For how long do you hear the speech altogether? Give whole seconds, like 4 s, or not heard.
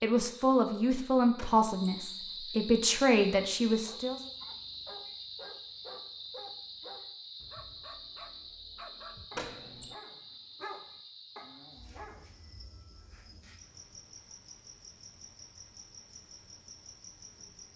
4 s.